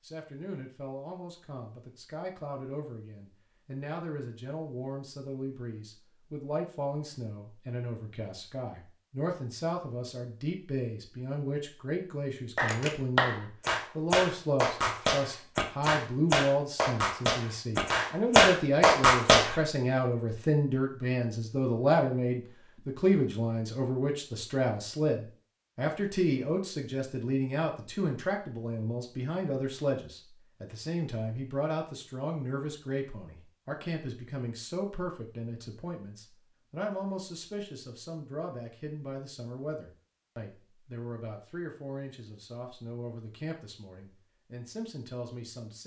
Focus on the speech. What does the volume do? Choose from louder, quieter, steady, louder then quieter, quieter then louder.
louder then quieter.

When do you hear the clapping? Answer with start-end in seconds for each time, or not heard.
12.6-19.6.